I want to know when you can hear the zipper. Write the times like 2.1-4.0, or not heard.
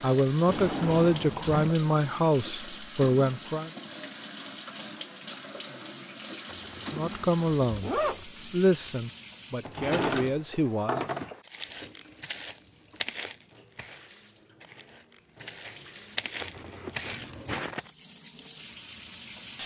6.5-8.2, 16.4-17.1.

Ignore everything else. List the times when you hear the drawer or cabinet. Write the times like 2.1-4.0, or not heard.
0.5-1.8, 9.7-11.3, 16.9-17.8.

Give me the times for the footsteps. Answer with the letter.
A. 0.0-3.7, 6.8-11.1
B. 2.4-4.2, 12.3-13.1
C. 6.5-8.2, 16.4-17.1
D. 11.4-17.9
D.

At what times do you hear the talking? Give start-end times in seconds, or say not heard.
0.0-3.7, 6.8-11.1.